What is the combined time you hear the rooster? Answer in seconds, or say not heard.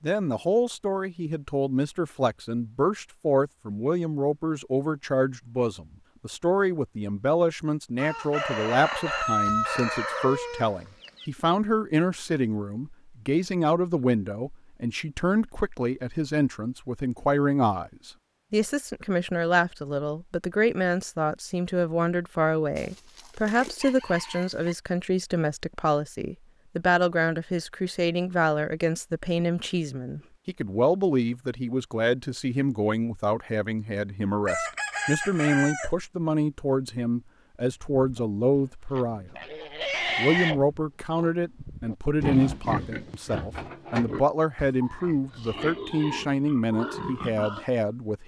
7 s.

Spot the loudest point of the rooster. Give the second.
9 s.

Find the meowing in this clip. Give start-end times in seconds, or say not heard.
not heard.